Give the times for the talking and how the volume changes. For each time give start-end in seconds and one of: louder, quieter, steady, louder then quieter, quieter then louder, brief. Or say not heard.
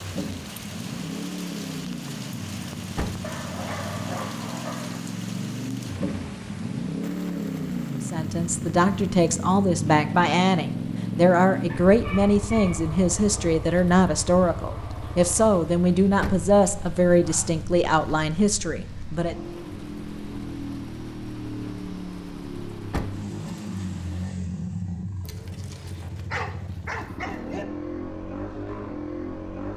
8.0-19.4 steady.